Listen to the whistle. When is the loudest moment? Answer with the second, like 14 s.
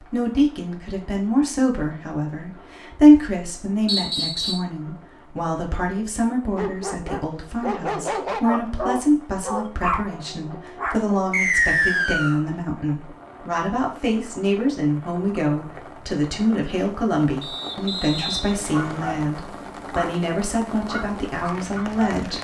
12 s.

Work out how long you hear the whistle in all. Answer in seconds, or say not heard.
4 s.